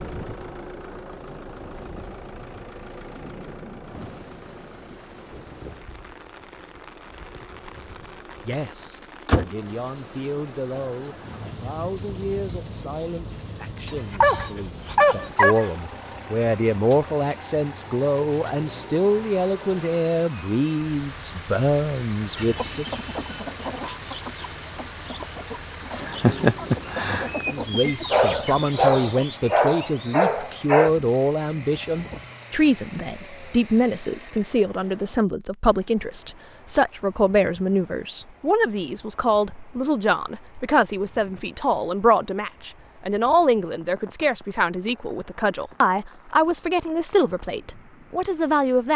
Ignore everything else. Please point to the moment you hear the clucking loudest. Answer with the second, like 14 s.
26 s.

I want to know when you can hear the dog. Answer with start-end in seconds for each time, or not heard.
14.1-15.7, 28.1-30.9.